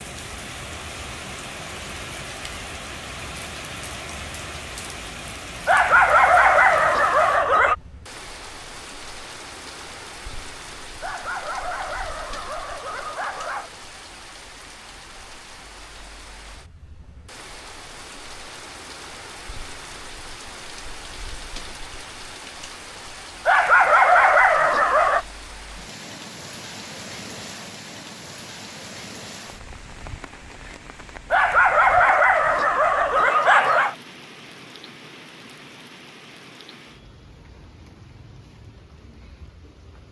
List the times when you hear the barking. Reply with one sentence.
You can hear the barking from 5.7 to 7.8 s, from 11.0 to 13.7 s, from 23.4 to 25.2 s and from 31.3 to 34.0 s.